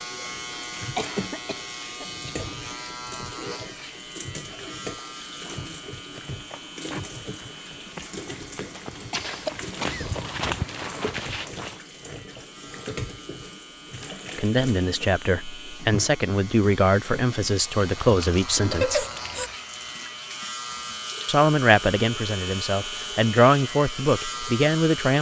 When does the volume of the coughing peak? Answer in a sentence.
The loudest moment of the coughing is at 19 seconds.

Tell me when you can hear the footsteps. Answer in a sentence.
You can hear the footsteps from 5.3 to 11.8 s.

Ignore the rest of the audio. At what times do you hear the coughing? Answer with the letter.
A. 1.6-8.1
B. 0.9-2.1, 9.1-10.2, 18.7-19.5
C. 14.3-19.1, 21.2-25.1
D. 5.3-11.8
B.